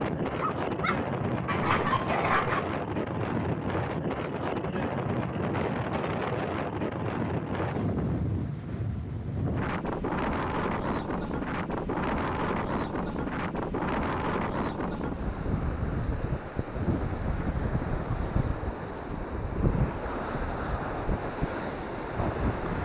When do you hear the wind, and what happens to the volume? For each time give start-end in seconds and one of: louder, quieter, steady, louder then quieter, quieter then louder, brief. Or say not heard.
0.0-22.8 steady.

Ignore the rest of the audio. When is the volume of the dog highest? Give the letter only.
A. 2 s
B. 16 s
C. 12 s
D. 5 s
A.